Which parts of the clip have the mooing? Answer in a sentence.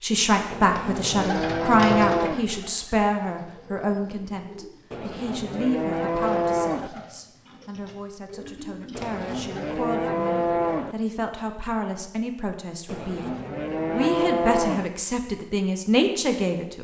The mooing can be heard from 0.5 to 2.5 s, from 4.9 to 6.9 s, from 8.9 to 10.9 s and from 12.8 to 14.9 s.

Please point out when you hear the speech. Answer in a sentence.
The speech can be heard from 0.0 to 13.2 s and from 13.9 to 16.8 s.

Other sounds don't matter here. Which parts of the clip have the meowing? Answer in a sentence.
The meowing can't be heard in this clip.